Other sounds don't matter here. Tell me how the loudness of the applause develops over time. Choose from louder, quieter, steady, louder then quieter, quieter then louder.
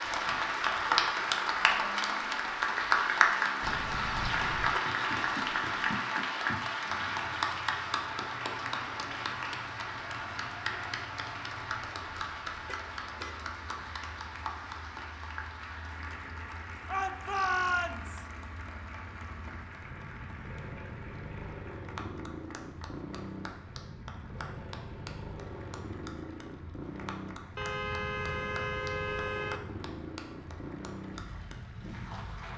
quieter.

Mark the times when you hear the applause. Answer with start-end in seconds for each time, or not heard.
0.0-32.5.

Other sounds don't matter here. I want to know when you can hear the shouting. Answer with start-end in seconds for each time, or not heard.
16.9-18.2.